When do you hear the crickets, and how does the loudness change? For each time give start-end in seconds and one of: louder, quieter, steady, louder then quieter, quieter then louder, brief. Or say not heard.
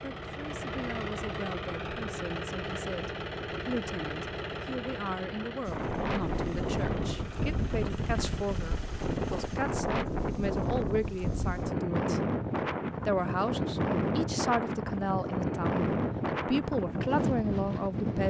not heard.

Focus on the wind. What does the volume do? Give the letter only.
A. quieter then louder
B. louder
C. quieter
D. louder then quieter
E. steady
E.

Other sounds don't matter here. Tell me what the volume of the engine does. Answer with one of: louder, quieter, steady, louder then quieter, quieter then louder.
quieter.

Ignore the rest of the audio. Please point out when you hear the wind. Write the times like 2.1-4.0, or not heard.
5.6-18.2.